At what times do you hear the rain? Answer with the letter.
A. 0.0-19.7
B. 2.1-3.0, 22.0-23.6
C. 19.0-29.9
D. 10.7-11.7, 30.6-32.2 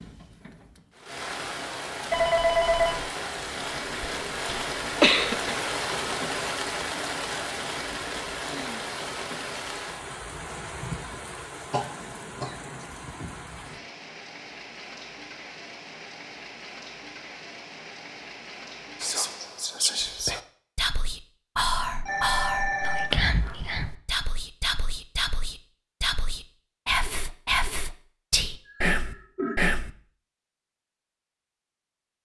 A.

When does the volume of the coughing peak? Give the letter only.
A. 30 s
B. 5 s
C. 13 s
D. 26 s
B.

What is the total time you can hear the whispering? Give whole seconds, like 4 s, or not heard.
11 s.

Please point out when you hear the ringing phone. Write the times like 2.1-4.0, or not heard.
2.1-3.0, 22.0-23.6.